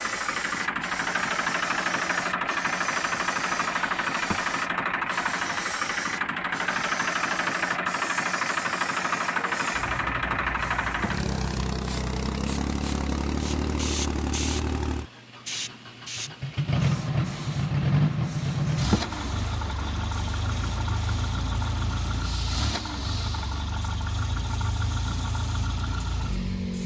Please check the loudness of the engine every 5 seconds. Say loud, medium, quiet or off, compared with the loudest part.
loud, loud, loud, loud, medium, medium.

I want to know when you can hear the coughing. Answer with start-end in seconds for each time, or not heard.
not heard.